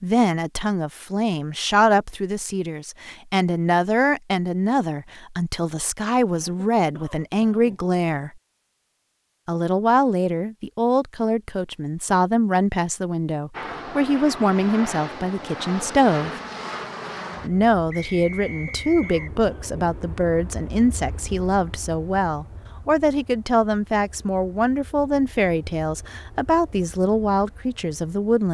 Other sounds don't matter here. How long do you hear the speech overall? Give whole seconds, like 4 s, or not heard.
26 s.